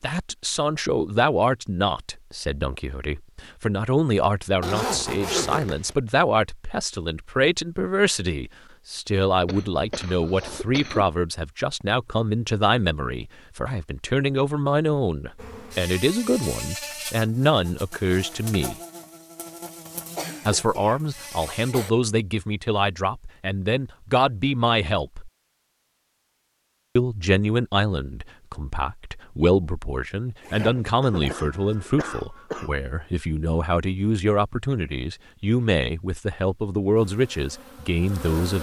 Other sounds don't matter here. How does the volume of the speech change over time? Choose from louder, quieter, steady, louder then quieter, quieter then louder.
steady.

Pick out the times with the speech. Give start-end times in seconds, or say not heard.
0.0-18.8, 20.4-25.3, 26.9-38.5.